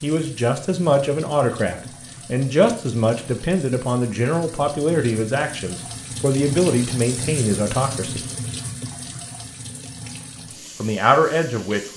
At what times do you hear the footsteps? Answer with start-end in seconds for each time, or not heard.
not heard.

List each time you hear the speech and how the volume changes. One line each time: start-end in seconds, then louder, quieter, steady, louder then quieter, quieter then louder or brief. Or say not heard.
0.0-8.2 steady
10.8-11.9 brief.